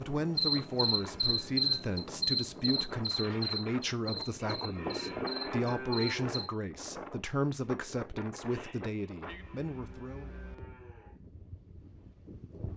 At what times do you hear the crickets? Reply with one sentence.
You can hear the crickets from 0.0 to 6.5 s.